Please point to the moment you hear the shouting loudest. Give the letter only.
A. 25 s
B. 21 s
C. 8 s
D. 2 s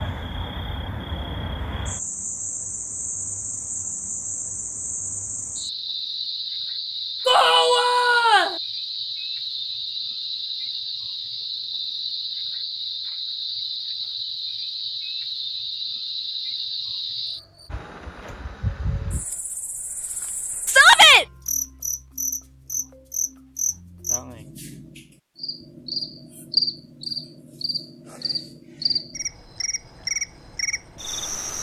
B.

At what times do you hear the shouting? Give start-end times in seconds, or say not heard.
7.2-8.6, 20.6-21.2.